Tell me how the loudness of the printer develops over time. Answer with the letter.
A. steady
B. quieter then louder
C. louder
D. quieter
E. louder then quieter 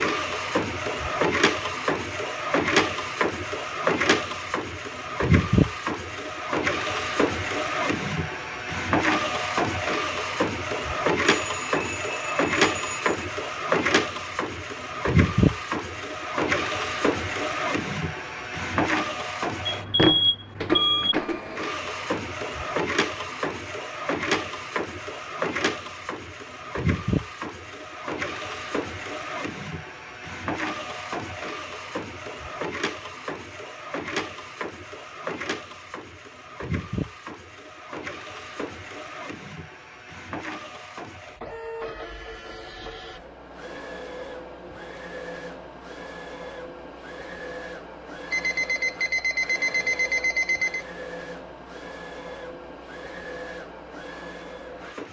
D.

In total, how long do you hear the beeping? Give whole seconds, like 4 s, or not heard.
6 s.